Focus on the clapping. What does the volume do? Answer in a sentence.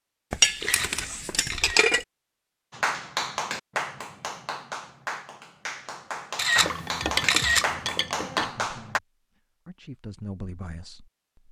The volume of the clapping goes down, then up.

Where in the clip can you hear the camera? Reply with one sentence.
You can hear the camera from 0.6 to 1.9 s and from 6.3 to 7.7 s.